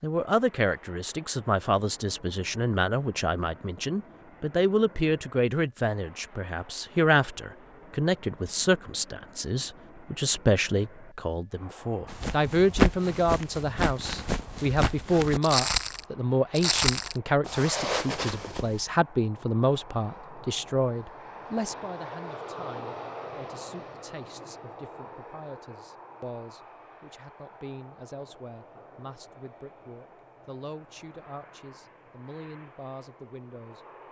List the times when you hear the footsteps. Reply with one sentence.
You can hear the footsteps from 12.1 to 18.9 s.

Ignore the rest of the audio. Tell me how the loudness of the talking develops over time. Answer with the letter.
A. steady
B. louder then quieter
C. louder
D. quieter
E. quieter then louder
D.